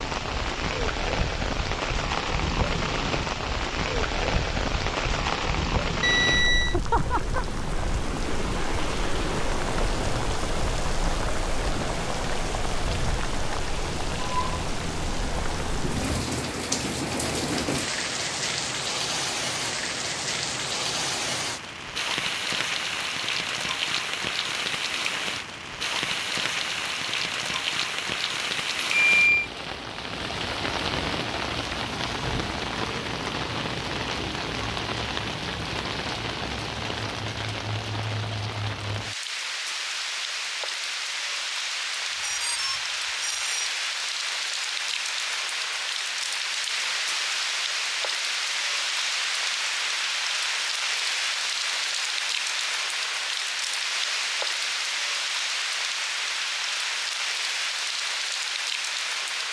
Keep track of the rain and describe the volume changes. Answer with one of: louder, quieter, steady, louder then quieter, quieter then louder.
steady.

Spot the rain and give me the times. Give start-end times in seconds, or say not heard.
0.0-59.4.